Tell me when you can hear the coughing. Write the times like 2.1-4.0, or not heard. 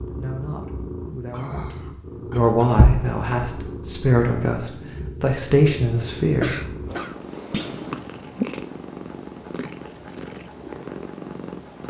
1.3-2.8, 6.4-7.2.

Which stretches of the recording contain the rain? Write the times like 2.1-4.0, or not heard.
not heard.